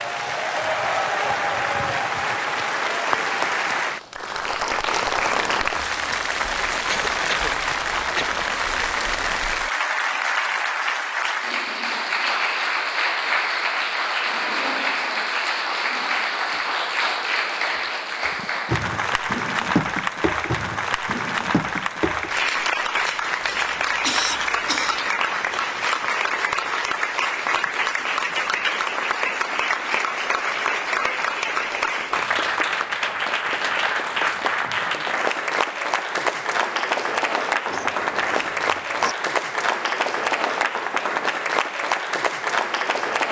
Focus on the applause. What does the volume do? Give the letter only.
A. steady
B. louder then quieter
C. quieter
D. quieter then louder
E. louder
A.